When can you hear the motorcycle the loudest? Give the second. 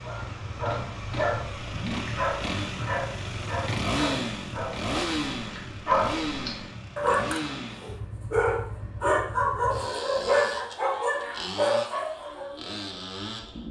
4 s.